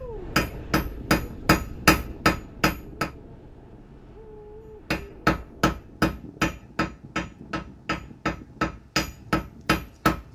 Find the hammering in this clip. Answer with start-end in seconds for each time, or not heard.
0.3-3.1, 4.9-10.2.